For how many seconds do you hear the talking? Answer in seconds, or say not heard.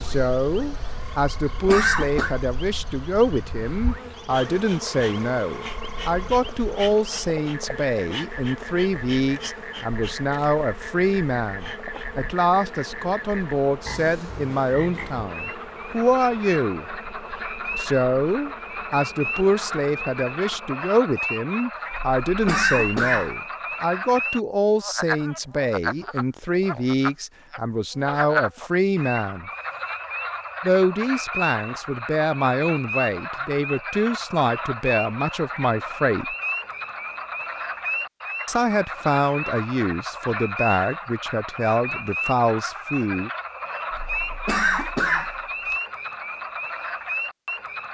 39 s.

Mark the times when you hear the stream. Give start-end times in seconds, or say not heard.
not heard.